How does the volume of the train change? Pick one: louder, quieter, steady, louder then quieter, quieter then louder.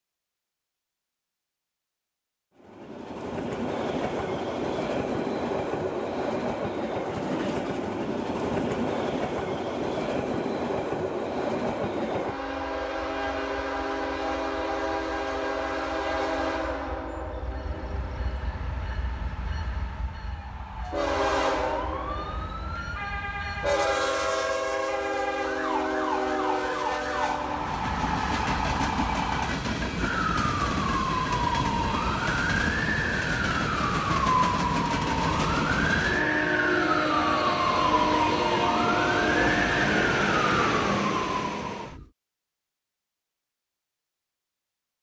steady.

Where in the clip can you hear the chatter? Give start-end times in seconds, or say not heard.
not heard.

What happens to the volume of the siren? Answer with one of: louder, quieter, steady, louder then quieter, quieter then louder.
louder.